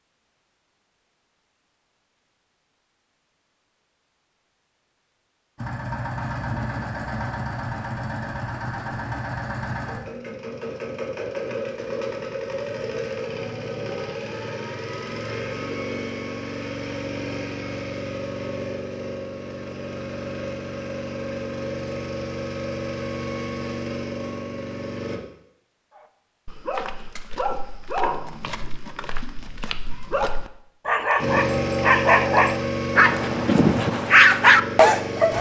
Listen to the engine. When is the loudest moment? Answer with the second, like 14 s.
32 s.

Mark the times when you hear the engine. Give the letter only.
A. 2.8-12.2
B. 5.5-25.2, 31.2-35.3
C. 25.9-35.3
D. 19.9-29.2
B.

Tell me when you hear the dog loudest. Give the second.
34 s.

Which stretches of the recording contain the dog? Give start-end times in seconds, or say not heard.
25.9-35.3.